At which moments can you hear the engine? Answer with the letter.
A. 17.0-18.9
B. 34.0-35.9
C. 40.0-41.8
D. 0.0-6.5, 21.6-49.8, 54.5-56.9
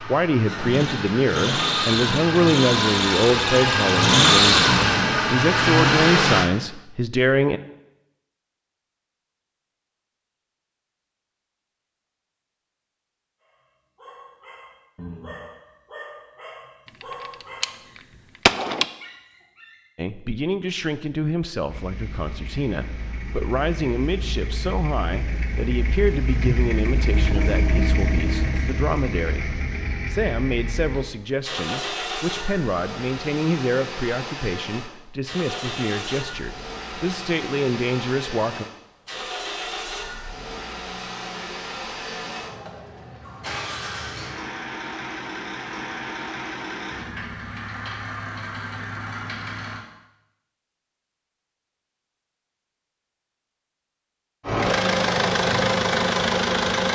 D.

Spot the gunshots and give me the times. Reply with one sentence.
The gunshots can be heard from 17.0 to 18.9 s.